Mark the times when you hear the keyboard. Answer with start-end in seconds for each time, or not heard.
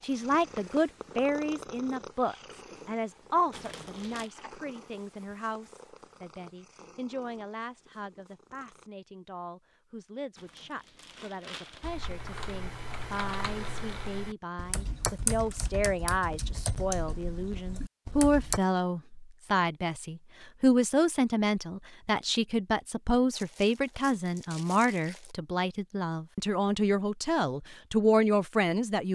11.8-18.6.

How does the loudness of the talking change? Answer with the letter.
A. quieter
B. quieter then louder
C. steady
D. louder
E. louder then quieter
B.